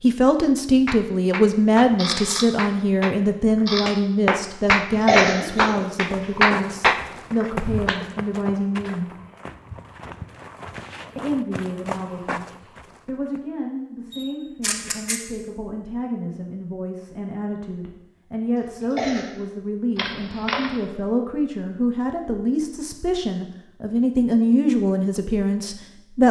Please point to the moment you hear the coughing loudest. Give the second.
5 s.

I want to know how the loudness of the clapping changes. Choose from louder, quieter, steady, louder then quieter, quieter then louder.
louder.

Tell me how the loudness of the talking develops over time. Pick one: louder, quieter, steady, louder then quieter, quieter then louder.
quieter then louder.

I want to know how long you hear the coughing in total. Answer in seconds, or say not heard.
2 s.